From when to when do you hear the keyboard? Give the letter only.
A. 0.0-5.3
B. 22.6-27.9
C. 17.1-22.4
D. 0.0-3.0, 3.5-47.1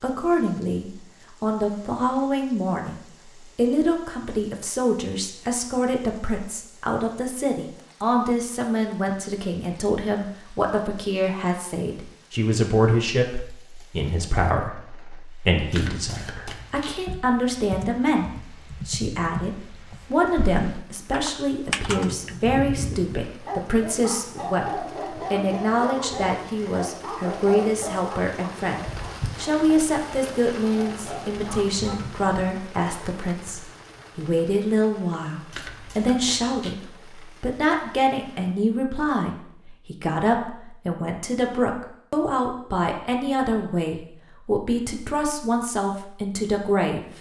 C.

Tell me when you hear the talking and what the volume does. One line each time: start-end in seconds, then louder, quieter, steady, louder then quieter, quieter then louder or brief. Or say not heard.
0.0-3.0 brief
3.5-47.1 steady.